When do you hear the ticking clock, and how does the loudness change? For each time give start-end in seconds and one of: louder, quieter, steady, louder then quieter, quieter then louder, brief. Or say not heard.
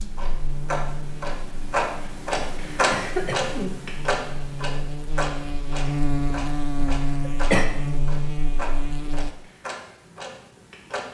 0.0-11.0 quieter.